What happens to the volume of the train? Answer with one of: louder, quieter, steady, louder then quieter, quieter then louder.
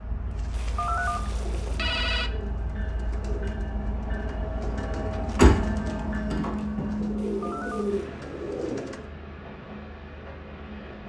louder then quieter.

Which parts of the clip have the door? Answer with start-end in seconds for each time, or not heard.
5.3-7.0.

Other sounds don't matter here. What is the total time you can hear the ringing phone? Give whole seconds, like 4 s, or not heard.
3 s.